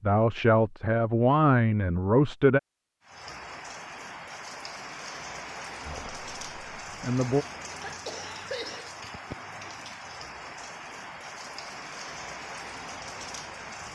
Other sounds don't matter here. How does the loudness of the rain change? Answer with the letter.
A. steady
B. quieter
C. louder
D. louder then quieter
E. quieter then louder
A.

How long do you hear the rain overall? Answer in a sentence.
The rain can be heard for 11 seconds in total.